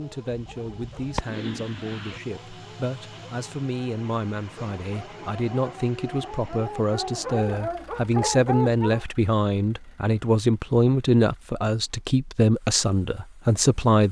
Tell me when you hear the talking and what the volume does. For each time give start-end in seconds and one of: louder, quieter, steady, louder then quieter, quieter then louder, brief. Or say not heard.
0.0-14.0 louder.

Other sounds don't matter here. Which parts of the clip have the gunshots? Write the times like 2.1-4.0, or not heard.
0.3-2.2.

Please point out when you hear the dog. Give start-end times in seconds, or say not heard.
0.0-9.1.